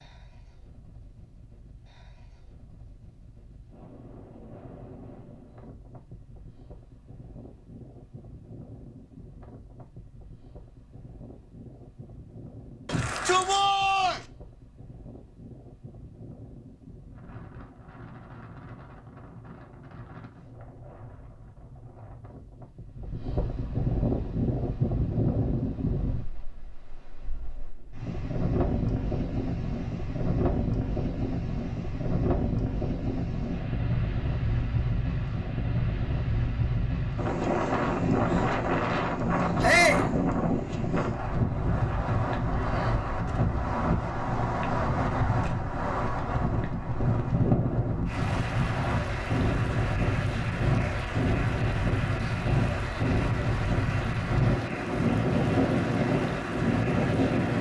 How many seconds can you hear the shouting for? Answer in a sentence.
You can hear the shouting for 2 seconds altogether.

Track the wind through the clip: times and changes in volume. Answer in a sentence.
The wind can be heard from 0.0 to 57.5 s, getting louder.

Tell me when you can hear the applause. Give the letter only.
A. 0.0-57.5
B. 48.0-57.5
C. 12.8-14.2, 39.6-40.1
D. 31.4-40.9
B.